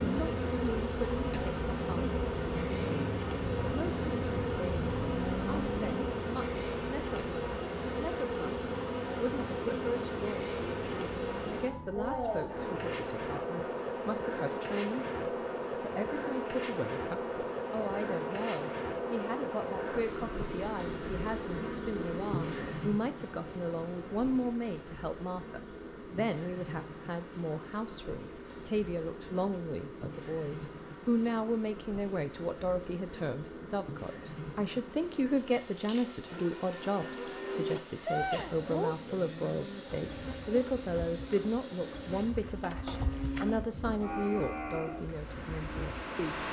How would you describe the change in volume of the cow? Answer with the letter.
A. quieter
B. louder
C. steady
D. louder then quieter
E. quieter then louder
E.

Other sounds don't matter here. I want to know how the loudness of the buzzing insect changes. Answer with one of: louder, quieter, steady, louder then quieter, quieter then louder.
quieter.